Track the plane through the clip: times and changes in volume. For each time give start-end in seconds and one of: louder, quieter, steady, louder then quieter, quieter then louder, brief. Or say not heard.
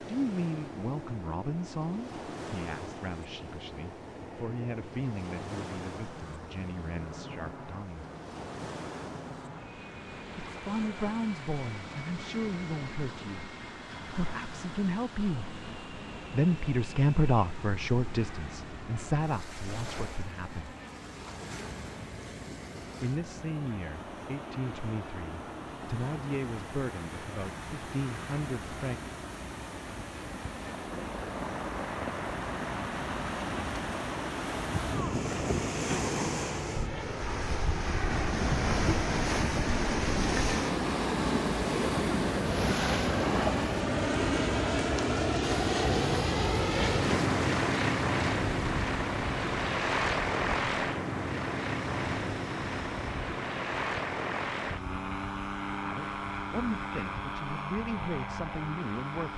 0.0-59.3 louder.